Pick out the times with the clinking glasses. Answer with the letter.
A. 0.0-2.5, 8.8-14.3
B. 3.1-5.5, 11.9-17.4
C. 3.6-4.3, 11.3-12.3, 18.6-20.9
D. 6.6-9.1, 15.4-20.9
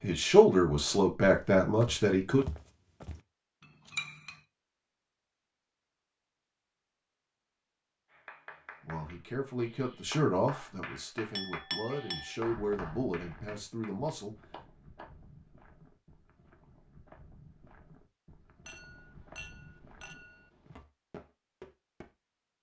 C.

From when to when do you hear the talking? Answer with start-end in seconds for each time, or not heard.
0.0-2.5, 8.8-14.3.